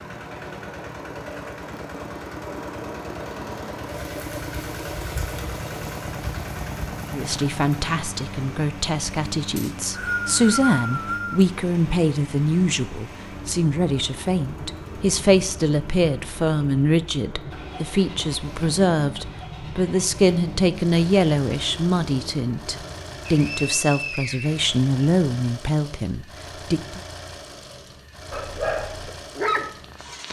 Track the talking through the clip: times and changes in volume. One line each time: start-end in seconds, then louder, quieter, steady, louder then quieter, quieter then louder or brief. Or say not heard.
7.1-27.0 steady.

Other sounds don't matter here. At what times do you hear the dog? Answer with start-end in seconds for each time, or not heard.
28.3-30.2.